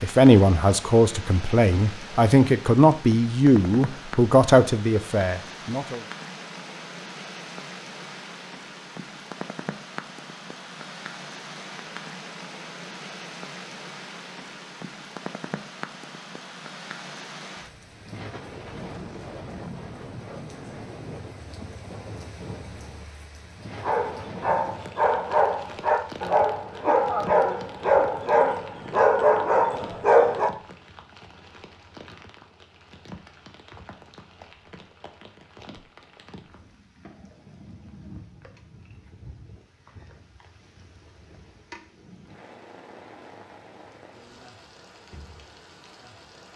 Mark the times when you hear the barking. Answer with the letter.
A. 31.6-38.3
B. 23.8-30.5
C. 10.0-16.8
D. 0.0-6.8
B.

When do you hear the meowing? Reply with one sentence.
You can't hear the meowing here.